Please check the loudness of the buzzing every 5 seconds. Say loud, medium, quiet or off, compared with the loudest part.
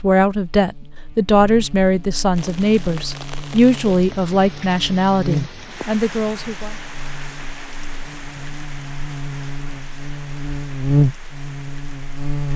quiet, medium, loud.